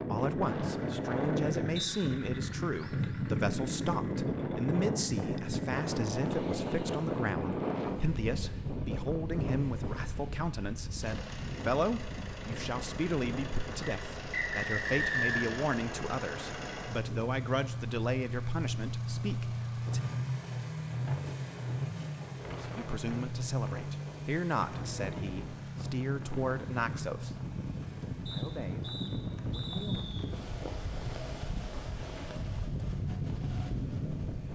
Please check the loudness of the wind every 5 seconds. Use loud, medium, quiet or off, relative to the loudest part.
loud, loud, medium, quiet, quiet, medium, medium.